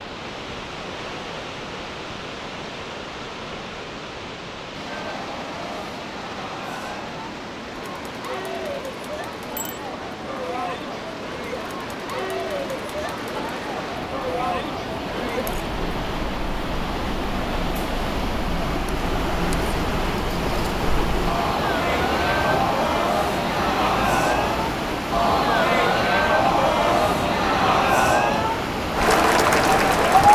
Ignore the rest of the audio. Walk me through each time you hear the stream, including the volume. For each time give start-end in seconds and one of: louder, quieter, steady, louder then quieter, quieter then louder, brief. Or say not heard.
0.0-30.3 louder.